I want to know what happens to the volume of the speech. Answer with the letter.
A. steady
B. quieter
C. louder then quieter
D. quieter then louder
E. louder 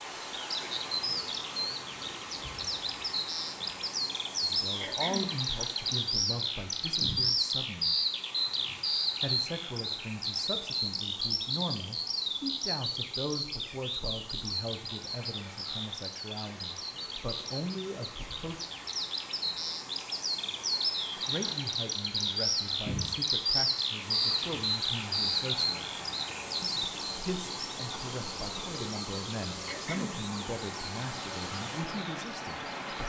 A.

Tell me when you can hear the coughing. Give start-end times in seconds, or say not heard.
4.8-5.4, 29.6-30.2.